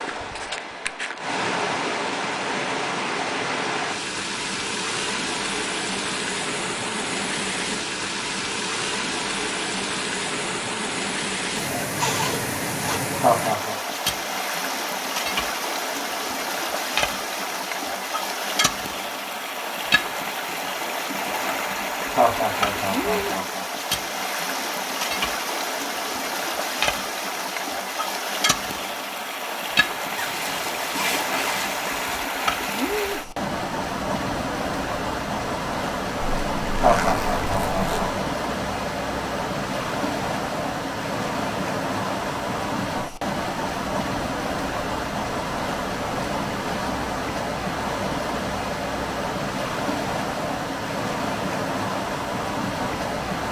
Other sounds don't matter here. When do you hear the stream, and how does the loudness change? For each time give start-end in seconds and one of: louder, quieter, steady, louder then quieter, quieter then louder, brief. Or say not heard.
0.0-53.4 steady.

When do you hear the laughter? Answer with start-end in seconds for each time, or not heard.
13.2-13.8, 22.1-23.6, 36.8-38.0.